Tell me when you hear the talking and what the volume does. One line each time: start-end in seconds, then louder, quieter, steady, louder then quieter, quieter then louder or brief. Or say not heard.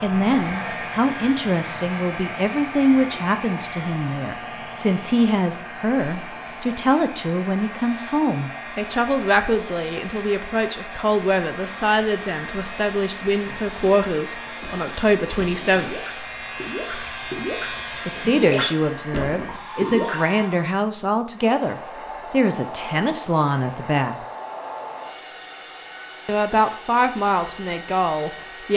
0.0-15.9 steady
18.1-24.1 steady
26.2-28.7 brief.